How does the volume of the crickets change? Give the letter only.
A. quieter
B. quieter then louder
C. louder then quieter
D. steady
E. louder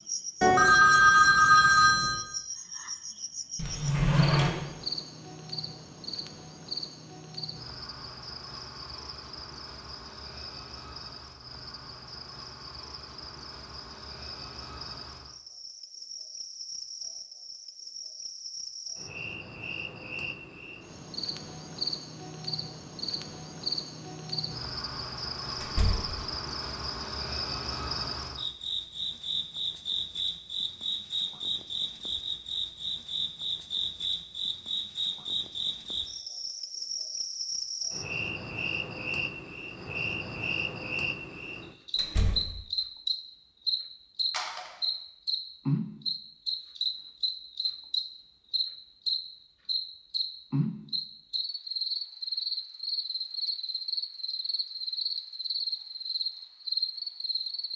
E.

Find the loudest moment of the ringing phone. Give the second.
1 s.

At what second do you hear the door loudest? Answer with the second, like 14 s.
4 s.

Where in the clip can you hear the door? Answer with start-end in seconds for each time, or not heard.
3.5-4.6, 25.6-26.1, 42.0-42.5.